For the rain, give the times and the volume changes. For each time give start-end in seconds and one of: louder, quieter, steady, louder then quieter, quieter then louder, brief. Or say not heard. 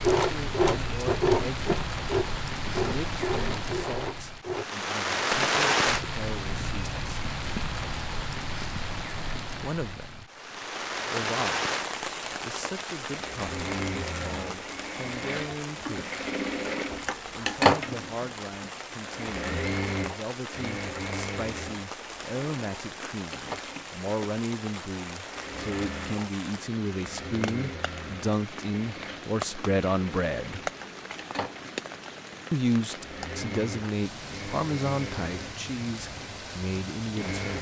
0.0-37.5 quieter.